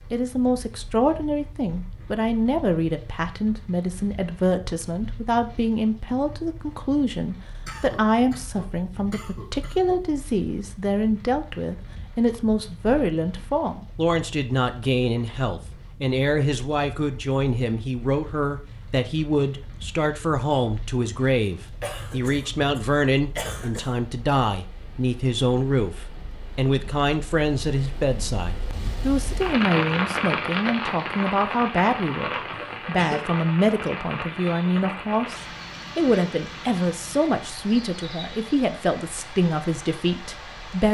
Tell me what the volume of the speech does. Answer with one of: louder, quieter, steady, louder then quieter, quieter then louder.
steady.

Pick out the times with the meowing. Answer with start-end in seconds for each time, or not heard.
not heard.